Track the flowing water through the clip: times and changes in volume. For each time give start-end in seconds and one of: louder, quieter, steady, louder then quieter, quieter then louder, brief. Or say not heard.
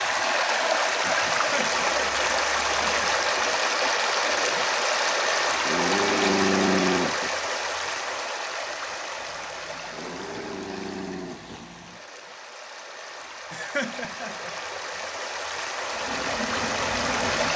0.0-17.5 quieter then louder.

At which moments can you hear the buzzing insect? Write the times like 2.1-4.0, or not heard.
15.9-17.5.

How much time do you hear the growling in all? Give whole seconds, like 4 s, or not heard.
3 s.